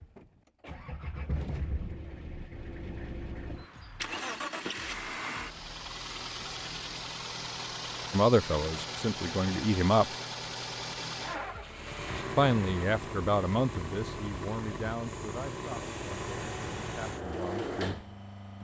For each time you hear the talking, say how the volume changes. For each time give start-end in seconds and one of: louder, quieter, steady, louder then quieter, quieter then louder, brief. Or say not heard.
8.1-10.1 brief
12.3-17.9 quieter.